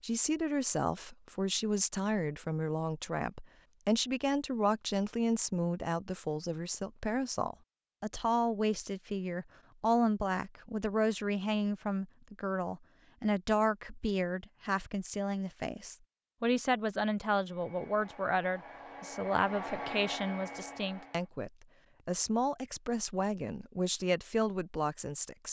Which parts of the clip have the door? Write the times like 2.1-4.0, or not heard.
not heard.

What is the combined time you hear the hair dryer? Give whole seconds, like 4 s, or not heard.
4 s.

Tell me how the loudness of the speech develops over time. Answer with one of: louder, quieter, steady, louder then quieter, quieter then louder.
steady.